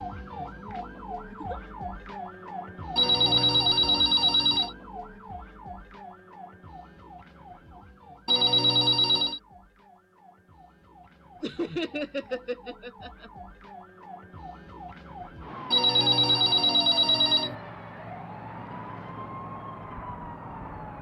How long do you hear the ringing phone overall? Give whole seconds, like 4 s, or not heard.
5 s.